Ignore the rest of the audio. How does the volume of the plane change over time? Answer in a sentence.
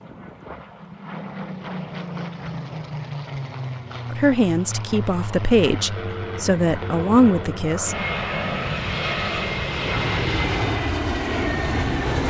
The volume of the plane goes up.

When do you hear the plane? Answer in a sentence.
The plane can be heard from 0.0 to 12.2 s.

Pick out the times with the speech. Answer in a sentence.
The speech can be heard from 4.1 to 8.0 s.